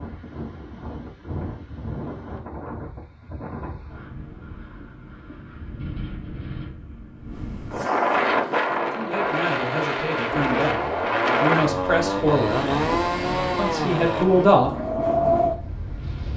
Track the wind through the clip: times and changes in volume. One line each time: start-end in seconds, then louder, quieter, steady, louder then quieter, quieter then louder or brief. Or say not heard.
0.0-16.3 louder.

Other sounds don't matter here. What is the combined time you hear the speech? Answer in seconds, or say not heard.
5 s.